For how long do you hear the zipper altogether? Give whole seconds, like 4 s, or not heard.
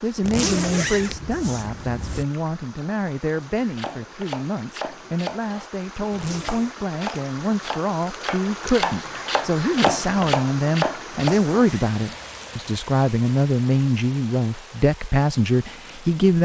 4 s.